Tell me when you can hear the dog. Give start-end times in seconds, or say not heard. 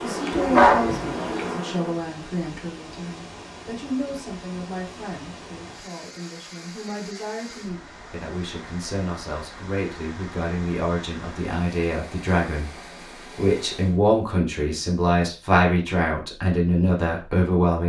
0.3-1.5.